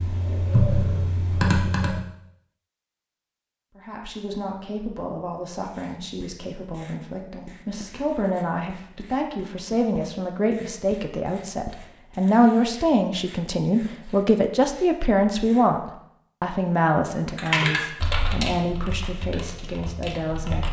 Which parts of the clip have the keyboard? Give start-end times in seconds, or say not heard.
0.0-2.0, 17.4-20.6.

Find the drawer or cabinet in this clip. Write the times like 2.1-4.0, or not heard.
not heard.